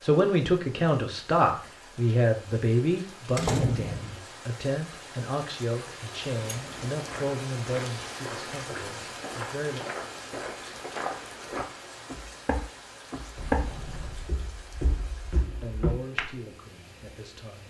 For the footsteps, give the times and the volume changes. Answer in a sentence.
The footsteps can be heard from 7.0 to 16.4 s, getting louder then quieter.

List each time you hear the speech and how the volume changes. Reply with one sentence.
The speech can be heard from 0.0 to 9.8 s, getting quieter; and briefly from 15.4 to 17.6 s.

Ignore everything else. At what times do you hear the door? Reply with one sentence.
You can hear the door from 3.4 to 4.2 s, from 6.2 to 7.2 s and from 13.3 to 14.4 s.